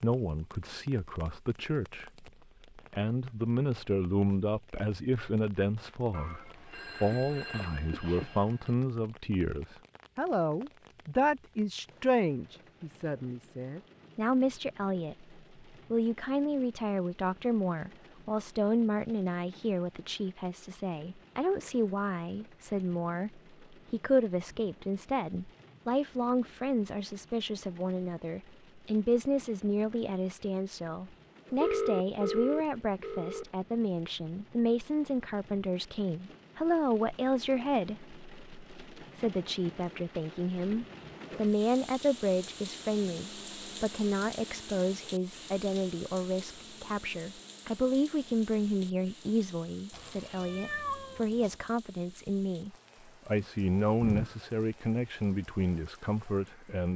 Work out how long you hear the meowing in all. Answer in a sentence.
The meowing can be heard for 2 seconds in total.